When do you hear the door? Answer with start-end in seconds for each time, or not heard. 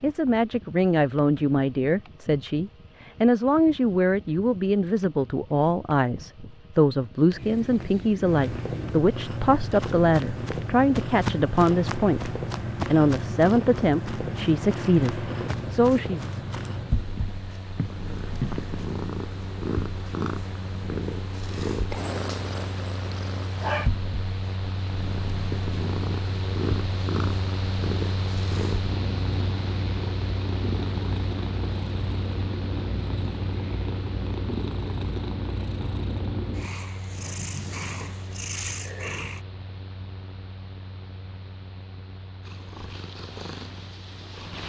not heard.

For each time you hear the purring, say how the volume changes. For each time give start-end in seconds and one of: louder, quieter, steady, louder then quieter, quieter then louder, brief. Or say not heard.
8.2-39.4 steady
42.4-44.6 brief.